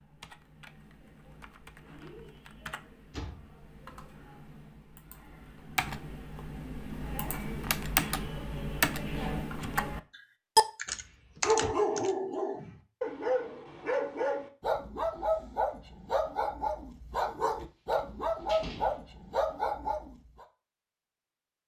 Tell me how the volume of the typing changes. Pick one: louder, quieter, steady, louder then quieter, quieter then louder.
louder.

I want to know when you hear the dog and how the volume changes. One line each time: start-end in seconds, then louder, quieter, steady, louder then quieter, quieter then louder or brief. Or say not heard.
11.4-20.4 steady.